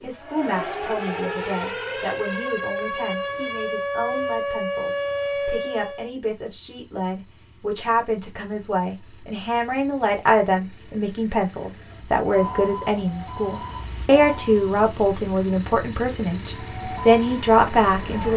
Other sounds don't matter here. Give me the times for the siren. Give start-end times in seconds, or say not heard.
0.0-6.1, 11.8-14.7, 16.6-18.3.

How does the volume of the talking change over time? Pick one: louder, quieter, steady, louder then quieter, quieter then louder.
louder.